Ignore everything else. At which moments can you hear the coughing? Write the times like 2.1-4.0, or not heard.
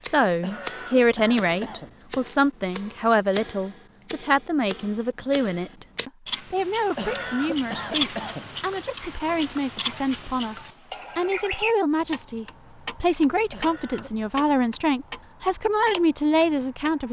0.4-1.9, 7.0-8.5, 13.5-14.3.